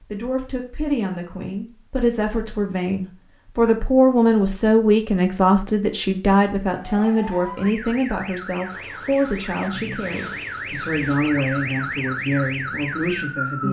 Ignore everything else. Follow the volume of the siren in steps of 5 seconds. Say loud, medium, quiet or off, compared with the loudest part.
off, medium, loud.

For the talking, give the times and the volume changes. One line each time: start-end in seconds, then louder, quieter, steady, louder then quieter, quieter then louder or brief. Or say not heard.
0.0-13.6 louder then quieter.